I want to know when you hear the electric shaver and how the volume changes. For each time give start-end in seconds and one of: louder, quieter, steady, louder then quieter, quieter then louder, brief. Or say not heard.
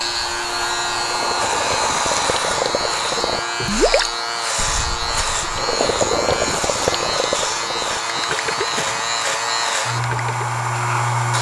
0.0-11.3 steady.